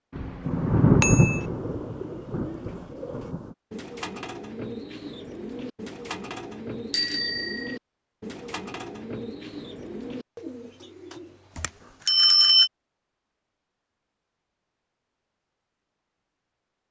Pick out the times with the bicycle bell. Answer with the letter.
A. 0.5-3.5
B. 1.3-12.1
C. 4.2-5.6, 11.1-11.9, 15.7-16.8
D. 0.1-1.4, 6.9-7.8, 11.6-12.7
D.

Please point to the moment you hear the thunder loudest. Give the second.
1 s.